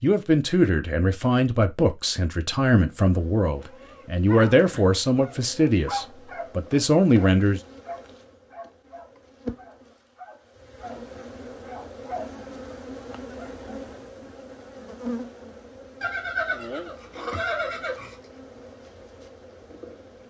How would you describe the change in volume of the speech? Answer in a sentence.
The volume of the speech stays about the same.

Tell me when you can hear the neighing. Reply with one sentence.
You can hear the neighing from 16.0 to 18.2 s.